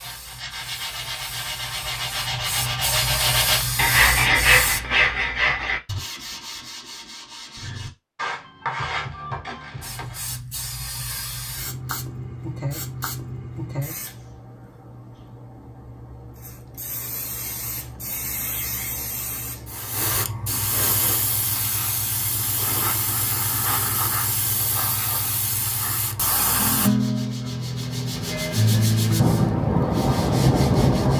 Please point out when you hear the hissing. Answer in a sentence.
You can hear the hissing from 0.0 to 4.8 s and from 9.8 to 26.9 s.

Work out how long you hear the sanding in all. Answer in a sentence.
The sanding can be heard for 15 seconds in total.